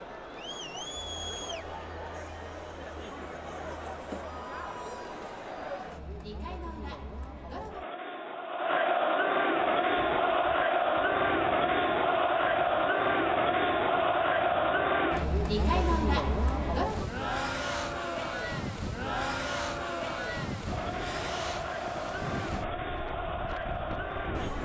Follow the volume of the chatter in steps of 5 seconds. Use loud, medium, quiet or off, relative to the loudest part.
quiet, medium, loud, medium, medium.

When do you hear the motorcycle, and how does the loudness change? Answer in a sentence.
The motorcycle can't be heard in this clip.